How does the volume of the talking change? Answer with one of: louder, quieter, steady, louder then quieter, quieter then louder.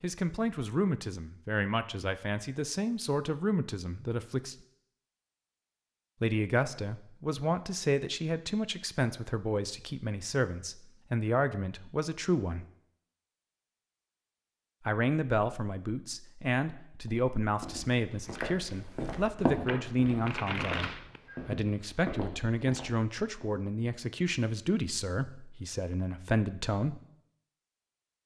steady.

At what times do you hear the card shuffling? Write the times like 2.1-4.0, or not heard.
19.6-21.2.